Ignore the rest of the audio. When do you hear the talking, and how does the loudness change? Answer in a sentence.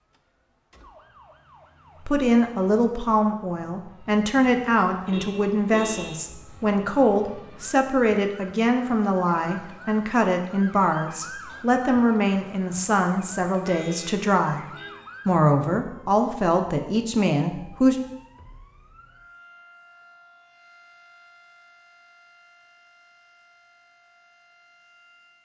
You can hear the talking from 2.0 to 14.7 s, at a steady volume; and briefly from 15.2 to 17.9 s.